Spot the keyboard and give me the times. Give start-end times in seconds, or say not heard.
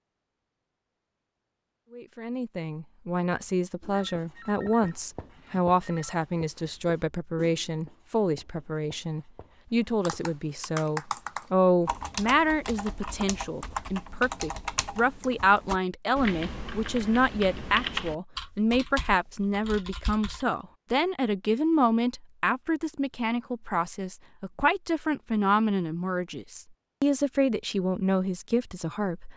10.0-20.4.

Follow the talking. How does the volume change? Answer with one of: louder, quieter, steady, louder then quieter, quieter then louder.
steady.